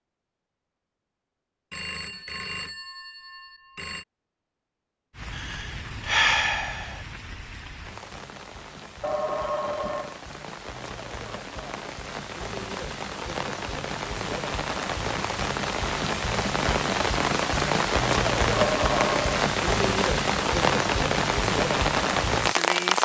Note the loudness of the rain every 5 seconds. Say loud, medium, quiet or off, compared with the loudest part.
off, quiet, medium, loud, loud.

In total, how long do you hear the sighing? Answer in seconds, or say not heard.
2 s.